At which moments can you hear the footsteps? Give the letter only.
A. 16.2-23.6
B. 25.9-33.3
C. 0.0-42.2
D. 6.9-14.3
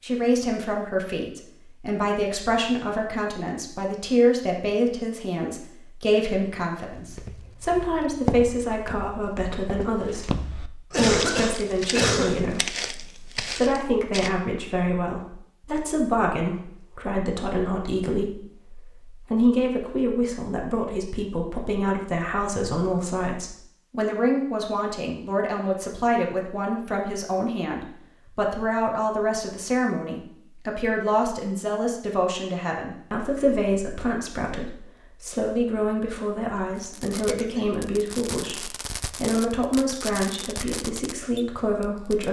D.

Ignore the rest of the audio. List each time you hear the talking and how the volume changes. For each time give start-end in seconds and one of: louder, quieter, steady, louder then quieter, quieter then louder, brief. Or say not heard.
0.0-42.2 steady.